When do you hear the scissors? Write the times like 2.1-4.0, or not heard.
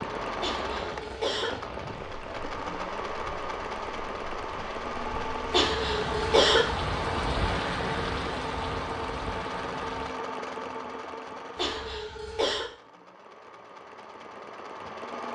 not heard.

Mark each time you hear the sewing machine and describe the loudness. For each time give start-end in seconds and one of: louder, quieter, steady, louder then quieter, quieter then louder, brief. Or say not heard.
0.0-15.3 quieter.